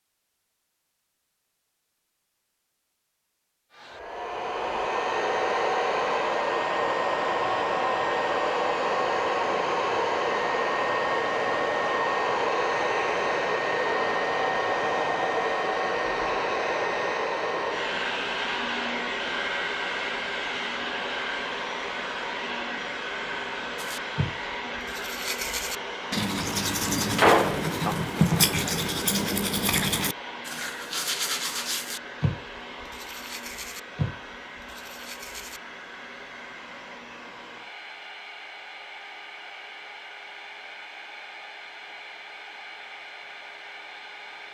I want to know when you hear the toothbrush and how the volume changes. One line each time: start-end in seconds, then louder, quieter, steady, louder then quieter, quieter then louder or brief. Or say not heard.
23.8-35.6 louder then quieter.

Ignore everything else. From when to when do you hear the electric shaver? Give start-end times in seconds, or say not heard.
not heard.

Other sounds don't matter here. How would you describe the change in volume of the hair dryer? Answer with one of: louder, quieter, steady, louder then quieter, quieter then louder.
quieter.